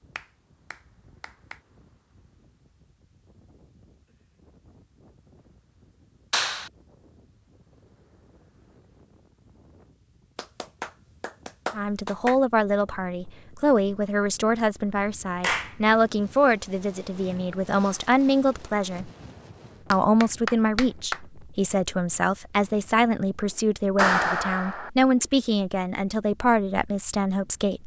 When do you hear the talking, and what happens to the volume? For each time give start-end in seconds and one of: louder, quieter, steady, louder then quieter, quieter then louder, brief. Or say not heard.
11.8-19.1 steady
19.9-27.8 steady.